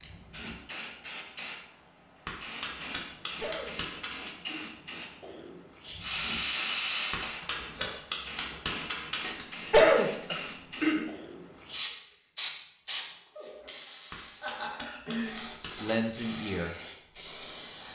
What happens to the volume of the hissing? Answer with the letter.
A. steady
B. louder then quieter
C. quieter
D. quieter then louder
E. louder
A.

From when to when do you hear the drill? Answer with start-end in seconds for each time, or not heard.
6.0-8.0.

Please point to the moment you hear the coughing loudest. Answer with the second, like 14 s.
10 s.